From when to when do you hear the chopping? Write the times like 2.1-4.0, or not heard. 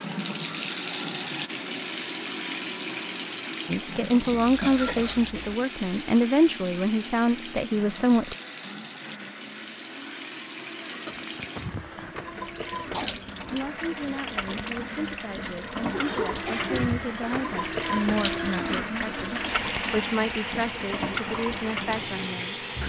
not heard.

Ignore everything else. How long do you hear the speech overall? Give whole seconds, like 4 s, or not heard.
14 s.